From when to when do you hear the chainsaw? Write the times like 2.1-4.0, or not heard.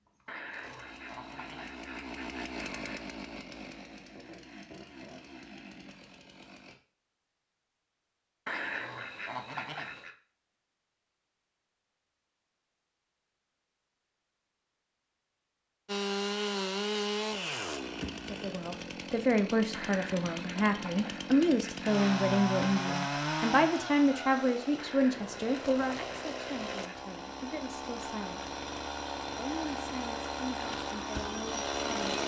0.1-6.8, 15.8-32.2.